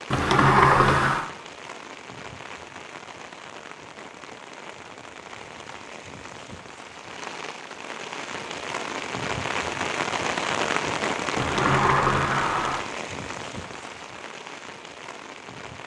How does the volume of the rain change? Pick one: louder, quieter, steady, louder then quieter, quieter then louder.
louder then quieter.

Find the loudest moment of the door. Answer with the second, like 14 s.
1 s.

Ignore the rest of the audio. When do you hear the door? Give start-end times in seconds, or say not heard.
0.1-1.3, 11.3-12.8.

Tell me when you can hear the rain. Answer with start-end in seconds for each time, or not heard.
0.0-15.8.